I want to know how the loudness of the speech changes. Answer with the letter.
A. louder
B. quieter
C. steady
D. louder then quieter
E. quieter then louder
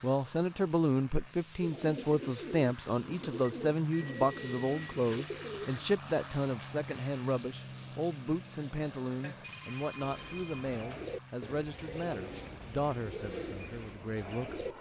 B.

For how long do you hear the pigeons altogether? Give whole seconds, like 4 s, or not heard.
9 s.